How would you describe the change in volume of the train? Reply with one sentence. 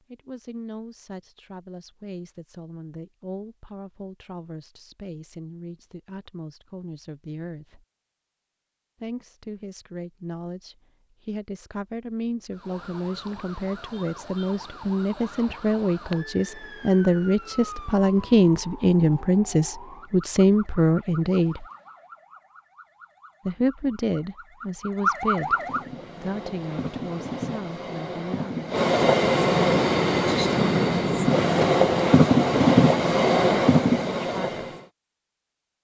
The volume of the train goes up.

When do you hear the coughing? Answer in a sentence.
You can't hear the coughing here.